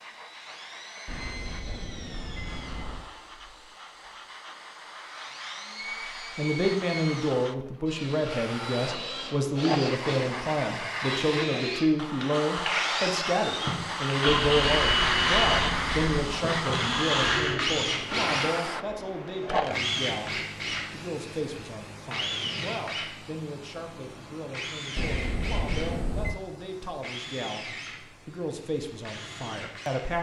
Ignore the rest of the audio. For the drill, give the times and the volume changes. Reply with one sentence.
You can hear the drill from 0.0 to 30.1 s, getting louder then quieter.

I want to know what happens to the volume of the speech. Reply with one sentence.
The volume of the speech goes down.